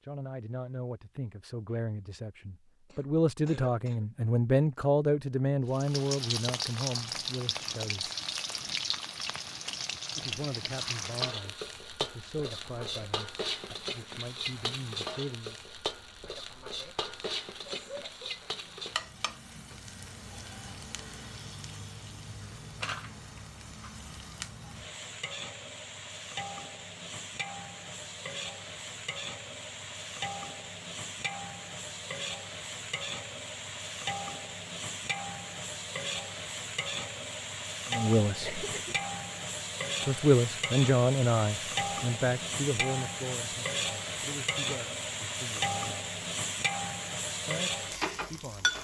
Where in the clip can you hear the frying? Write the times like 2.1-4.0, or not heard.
5.7-48.7.